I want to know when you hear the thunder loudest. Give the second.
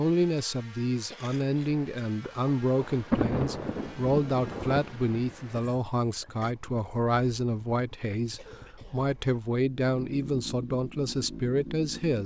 3 s.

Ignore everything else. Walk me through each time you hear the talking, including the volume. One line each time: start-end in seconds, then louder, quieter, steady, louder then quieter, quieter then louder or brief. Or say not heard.
0.0-12.2 steady.